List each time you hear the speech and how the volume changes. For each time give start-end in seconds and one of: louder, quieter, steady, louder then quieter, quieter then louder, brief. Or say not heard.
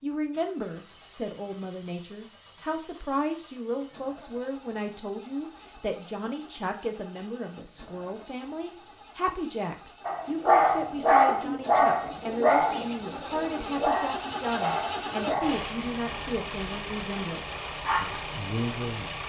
0.0-19.2 steady.